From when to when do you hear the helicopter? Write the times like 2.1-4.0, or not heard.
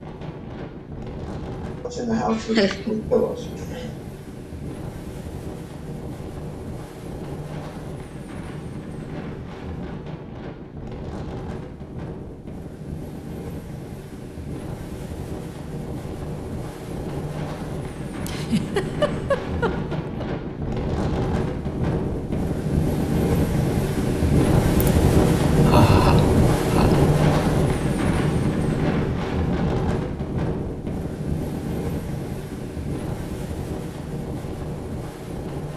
not heard.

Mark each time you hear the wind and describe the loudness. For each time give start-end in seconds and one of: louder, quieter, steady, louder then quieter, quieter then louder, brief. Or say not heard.
0.0-35.7 louder then quieter.